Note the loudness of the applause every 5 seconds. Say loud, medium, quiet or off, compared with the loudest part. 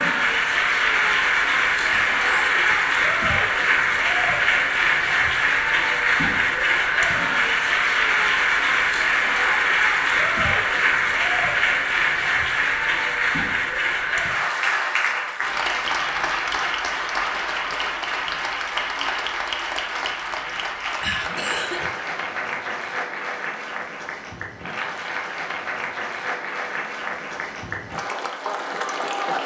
loud, loud, loud, medium, medium, medium.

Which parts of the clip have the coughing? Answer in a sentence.
You can hear the coughing from 1.9 to 2.6 s and from 21.0 to 21.9 s.